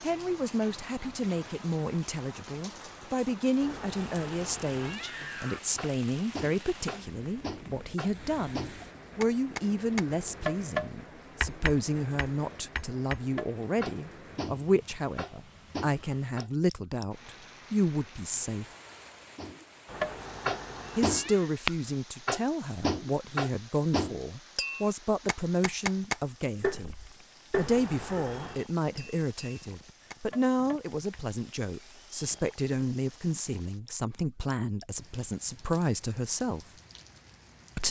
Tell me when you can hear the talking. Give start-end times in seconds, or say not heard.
0.0-18.6, 20.9-36.6.